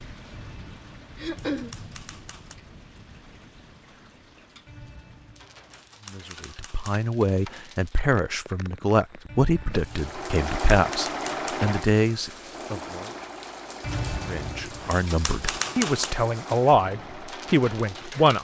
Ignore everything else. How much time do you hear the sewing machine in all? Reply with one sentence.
You can hear the sewing machine for 8 seconds altogether.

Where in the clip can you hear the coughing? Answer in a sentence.
You can hear the coughing from 1.1 to 1.8 s.